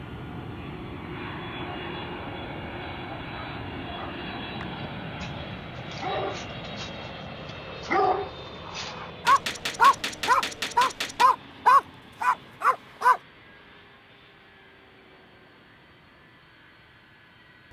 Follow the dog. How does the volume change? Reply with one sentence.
The volume of the dog goes up.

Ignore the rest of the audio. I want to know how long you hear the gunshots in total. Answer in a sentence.
The gunshots can be heard for 2 seconds in total.